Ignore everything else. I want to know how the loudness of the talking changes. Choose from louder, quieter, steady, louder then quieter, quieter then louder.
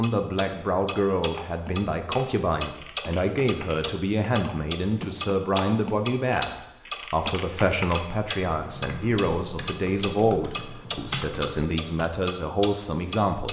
steady.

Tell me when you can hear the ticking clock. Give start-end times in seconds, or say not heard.
0.0-13.4.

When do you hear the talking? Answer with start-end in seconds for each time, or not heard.
0.0-13.4.